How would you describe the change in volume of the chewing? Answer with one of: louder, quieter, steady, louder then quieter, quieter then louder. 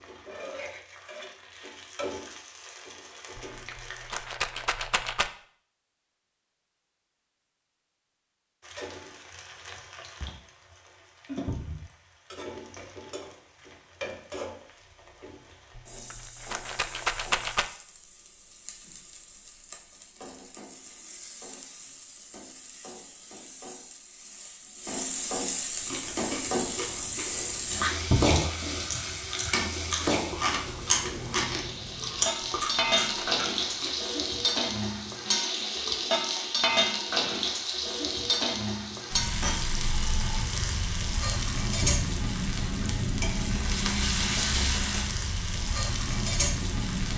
louder.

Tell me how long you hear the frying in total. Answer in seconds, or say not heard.
43 s.